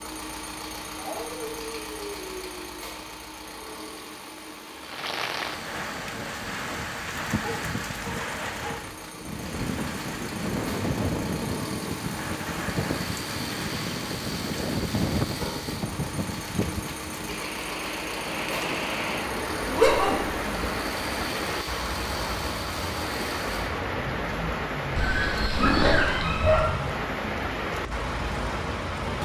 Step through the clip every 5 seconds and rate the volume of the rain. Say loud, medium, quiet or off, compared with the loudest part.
quiet, loud, loud, loud, loud, loud.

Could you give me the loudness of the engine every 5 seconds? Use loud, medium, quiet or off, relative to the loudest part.
loud, medium, loud, loud, loud, loud.